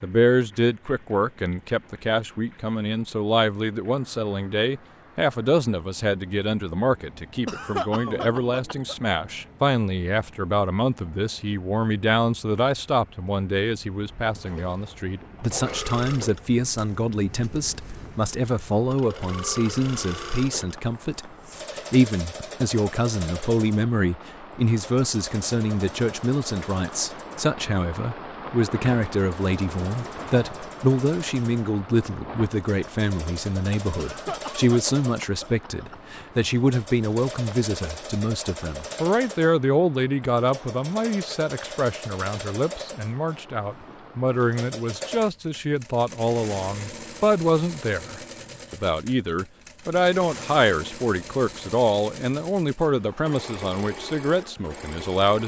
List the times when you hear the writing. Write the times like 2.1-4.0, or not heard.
not heard.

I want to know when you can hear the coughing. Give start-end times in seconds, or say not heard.
7.5-8.9, 34.0-36.0.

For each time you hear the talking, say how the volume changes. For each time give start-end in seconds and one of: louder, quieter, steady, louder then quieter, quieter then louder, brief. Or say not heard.
0.0-55.4 steady.